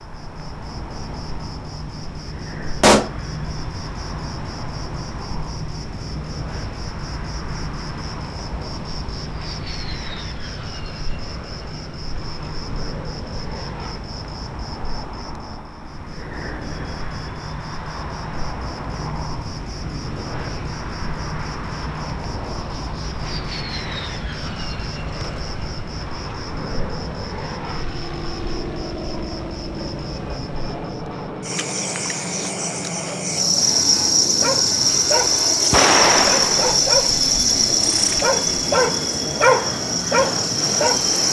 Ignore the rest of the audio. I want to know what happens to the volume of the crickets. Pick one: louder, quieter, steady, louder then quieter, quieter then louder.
louder.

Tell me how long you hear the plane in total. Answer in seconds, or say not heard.
41 s.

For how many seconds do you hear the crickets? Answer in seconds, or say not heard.
41 s.